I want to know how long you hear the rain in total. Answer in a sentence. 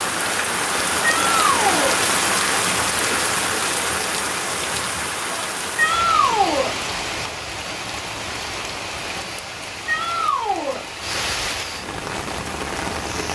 You can hear the rain for 13 seconds altogether.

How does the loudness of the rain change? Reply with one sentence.
The volume of the rain goes down.